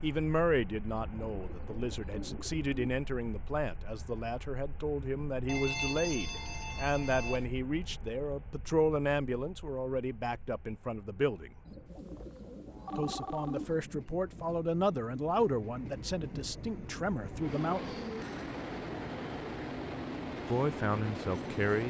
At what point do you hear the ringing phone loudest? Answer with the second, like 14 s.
6 s.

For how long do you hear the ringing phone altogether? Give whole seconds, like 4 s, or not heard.
3 s.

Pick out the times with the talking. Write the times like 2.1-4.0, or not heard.
0.0-11.5, 12.9-17.9, 20.4-21.8.